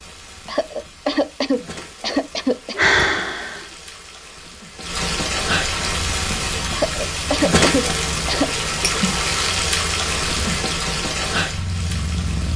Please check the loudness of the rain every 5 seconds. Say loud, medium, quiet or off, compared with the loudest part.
quiet, loud, loud.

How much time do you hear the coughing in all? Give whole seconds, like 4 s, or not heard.
4 s.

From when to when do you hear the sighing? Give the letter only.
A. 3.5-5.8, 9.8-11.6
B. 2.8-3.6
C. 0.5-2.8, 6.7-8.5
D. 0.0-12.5
B.